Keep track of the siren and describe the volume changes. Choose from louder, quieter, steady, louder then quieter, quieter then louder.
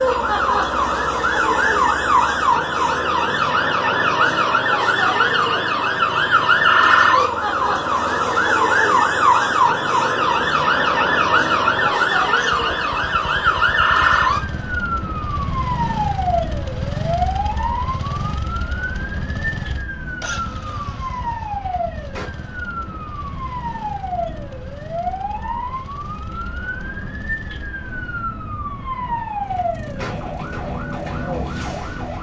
quieter.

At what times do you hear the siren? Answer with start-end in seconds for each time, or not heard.
0.0-32.1.